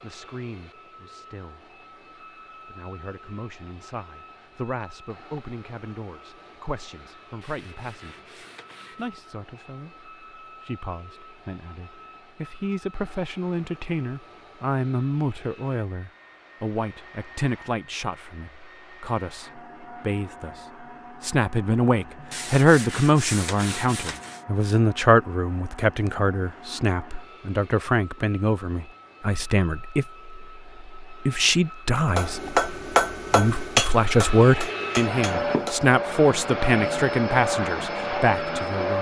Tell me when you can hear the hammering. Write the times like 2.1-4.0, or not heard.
32.1-35.9.